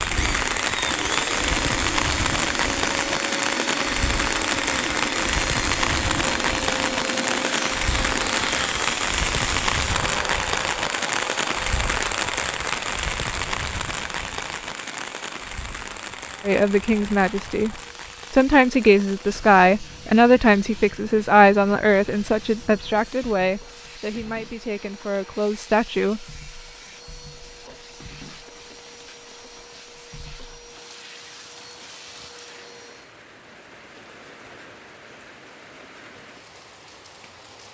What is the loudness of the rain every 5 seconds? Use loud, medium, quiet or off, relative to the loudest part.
loud, loud, loud, quiet, quiet, quiet, quiet, quiet.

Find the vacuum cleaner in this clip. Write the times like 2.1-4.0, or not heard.
0.0-33.1.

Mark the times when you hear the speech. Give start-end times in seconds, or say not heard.
16.4-26.2.